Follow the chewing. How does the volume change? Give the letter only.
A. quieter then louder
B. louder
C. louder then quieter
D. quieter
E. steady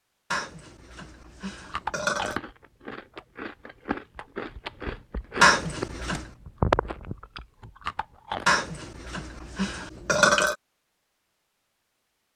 C.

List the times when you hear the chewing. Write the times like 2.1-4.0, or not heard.
1.6-8.5.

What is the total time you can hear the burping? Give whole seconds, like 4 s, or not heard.
5 s.